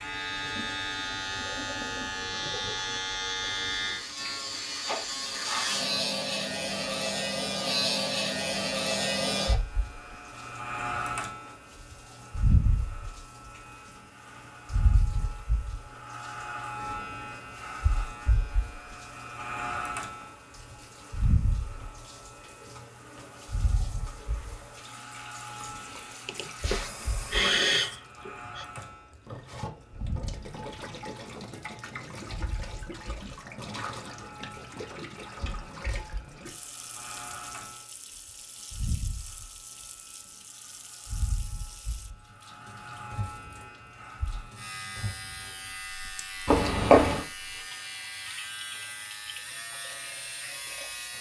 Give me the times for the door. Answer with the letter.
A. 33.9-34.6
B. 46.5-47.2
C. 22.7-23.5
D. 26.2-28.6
B.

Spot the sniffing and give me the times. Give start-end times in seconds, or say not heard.
26.2-28.6.